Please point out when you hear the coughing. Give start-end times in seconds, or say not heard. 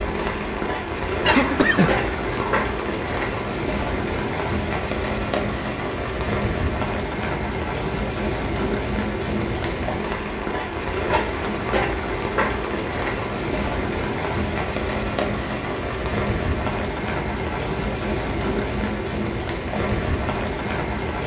1.2-2.6.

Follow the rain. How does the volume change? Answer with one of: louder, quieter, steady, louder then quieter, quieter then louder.
steady.